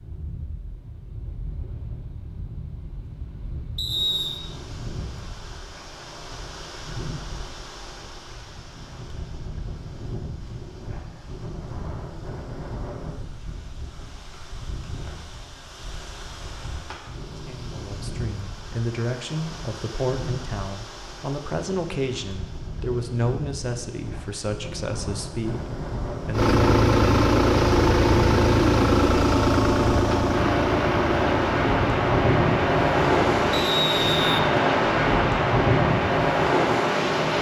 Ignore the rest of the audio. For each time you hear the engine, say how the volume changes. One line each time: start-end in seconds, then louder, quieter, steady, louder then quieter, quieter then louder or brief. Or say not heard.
26.3-33.7 quieter.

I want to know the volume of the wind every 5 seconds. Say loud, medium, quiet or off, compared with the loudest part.
quiet, quiet, quiet, quiet, quiet, quiet, loud, loud.